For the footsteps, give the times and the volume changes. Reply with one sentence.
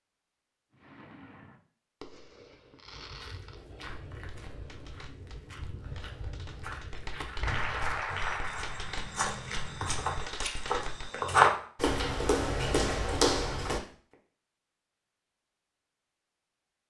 You can hear the footsteps from 2.9 to 13.8 s, getting louder.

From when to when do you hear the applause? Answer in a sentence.
You can hear the applause from 7.4 to 10.8 s.